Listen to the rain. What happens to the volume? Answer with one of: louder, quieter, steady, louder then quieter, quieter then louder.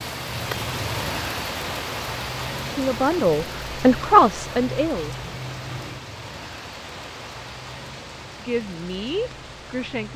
quieter.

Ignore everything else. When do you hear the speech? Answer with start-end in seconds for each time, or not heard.
2.6-5.2, 8.4-10.1.